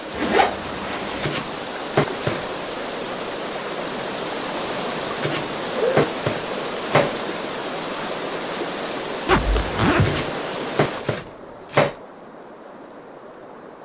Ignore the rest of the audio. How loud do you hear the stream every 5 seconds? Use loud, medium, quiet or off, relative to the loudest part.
loud, loud, medium.